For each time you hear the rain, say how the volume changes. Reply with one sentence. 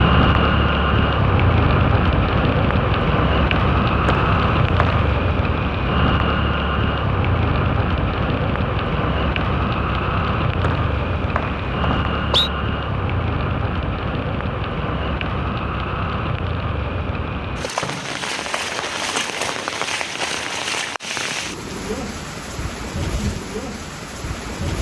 You can hear the rain from 0.0 to 24.7 s, getting quieter.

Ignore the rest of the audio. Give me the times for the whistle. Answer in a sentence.
You can hear the whistle from 4.0 to 5.2 s, from 10.6 to 12.5 s and from 17.8 to 19.3 s.